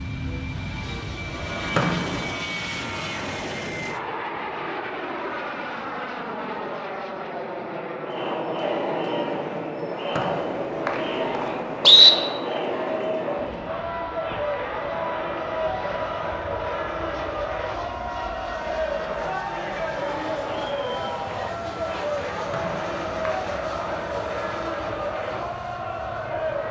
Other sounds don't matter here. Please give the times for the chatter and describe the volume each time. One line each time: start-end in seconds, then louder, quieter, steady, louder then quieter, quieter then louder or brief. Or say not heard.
8.0-26.6 steady.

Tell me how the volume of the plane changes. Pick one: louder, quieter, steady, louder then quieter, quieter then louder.
quieter.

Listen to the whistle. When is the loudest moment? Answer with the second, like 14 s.
12 s.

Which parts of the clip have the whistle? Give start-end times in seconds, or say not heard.
1.8-2.2, 10.2-12.1, 22.5-23.9.